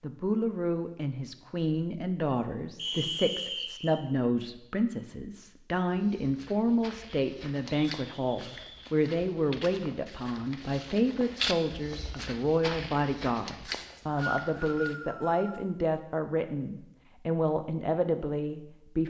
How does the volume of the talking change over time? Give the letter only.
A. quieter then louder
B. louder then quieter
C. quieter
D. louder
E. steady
E.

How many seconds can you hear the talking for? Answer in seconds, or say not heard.
19 s.